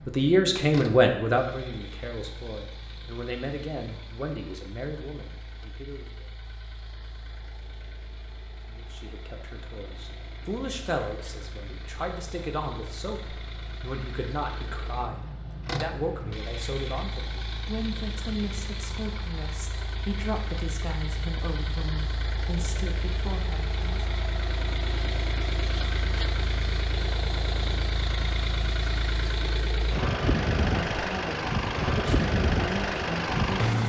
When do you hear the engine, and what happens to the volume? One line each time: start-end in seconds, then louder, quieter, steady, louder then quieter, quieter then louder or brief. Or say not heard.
0.0-33.8 louder.